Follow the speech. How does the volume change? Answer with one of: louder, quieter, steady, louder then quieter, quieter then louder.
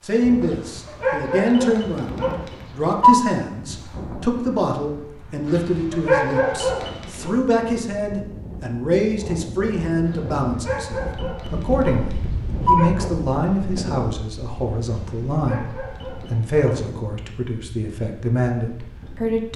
steady.